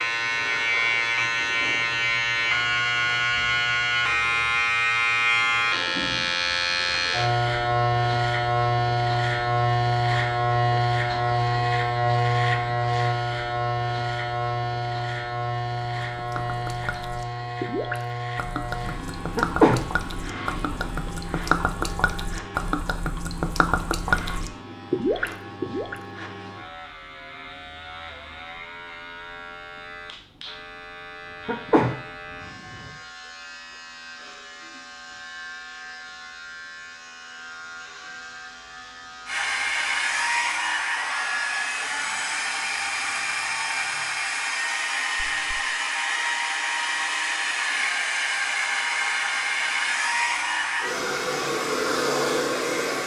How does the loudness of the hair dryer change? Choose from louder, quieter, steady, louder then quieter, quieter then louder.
steady.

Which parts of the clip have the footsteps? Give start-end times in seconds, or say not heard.
not heard.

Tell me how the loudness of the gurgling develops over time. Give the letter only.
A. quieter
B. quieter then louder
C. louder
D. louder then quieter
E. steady
C.